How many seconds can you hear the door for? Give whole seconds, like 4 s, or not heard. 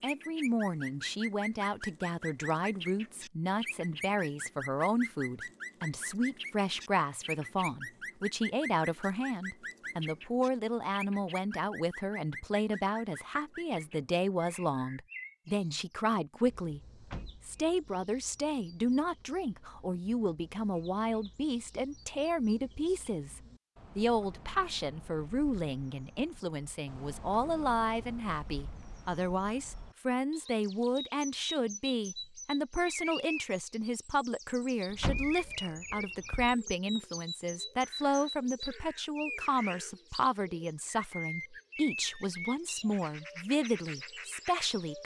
2 s.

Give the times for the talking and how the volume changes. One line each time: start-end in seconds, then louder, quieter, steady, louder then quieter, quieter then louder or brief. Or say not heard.
0.0-16.8 steady
17.4-45.0 steady.